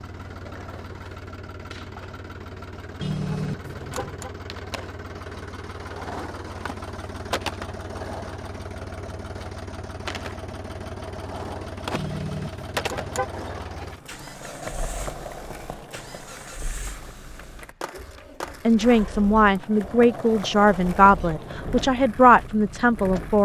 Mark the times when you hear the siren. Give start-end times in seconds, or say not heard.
not heard.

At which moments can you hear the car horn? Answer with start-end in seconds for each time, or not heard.
3.0-4.3, 11.9-13.2.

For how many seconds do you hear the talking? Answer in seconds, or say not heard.
5 s.